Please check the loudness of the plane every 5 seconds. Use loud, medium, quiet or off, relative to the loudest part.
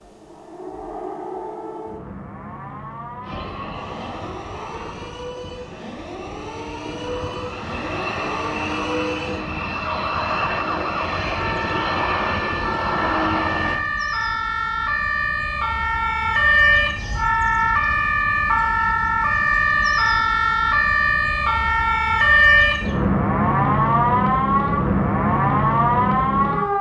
medium, medium, loud, off, off, off.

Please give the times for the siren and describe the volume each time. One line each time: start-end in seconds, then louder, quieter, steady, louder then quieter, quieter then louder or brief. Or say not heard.
0.0-26.7 louder.